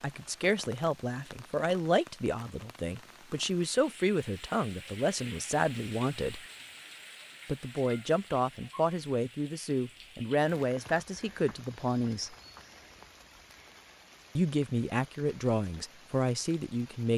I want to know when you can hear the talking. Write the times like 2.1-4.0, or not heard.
0.0-6.4, 7.5-12.3, 14.3-17.1.